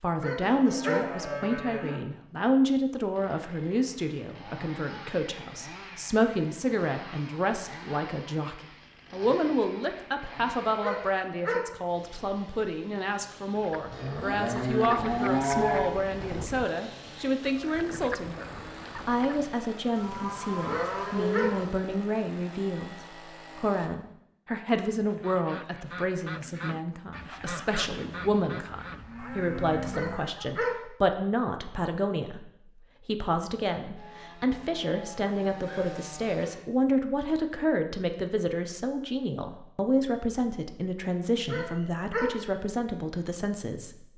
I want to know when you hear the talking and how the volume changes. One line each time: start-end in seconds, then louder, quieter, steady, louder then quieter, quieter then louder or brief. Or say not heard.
0.0-44.1 steady.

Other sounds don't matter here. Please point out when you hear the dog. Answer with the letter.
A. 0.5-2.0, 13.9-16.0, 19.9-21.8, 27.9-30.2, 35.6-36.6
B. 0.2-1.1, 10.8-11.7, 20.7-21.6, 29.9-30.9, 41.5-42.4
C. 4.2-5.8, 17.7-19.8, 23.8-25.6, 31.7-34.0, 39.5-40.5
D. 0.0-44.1
B.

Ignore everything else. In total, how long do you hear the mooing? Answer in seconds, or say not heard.
9 s.